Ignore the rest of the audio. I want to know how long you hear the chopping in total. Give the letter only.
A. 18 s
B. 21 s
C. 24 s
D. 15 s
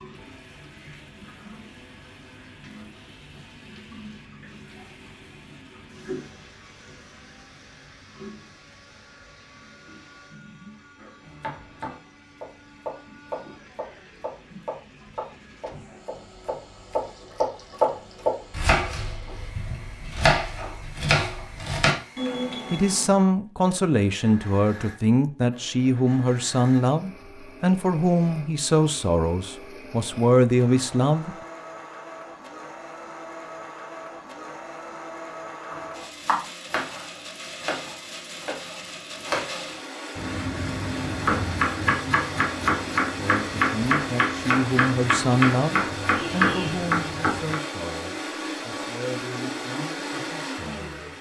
C.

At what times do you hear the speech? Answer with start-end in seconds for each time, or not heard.
22.7-31.4, 43.1-51.1.